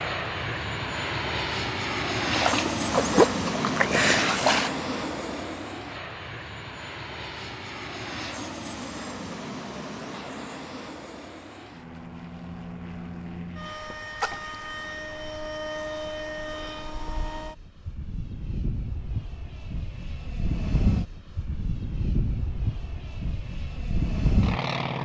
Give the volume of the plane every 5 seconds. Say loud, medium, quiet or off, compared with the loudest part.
loud, medium, medium, medium, loud.